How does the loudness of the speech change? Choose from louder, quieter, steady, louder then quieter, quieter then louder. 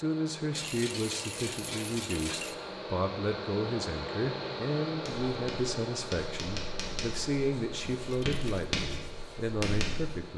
steady.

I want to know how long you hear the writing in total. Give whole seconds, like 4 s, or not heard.
5 s.